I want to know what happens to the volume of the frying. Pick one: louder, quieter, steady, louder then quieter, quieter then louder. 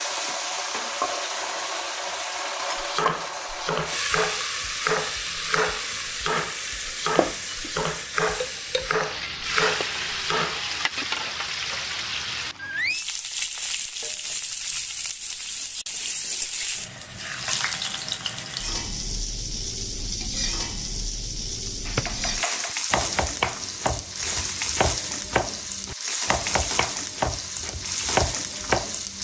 steady.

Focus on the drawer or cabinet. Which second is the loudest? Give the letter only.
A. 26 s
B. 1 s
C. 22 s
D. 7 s
C.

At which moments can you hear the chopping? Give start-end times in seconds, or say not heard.
2.8-10.7, 21.9-29.2.